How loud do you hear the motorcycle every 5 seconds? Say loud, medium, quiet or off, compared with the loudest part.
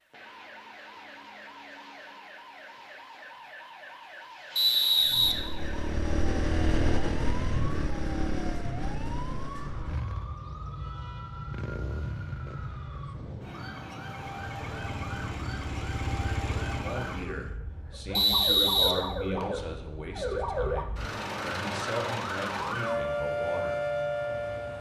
off, loud, medium, medium, off.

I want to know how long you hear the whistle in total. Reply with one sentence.
The whistle can be heard for 2 seconds in total.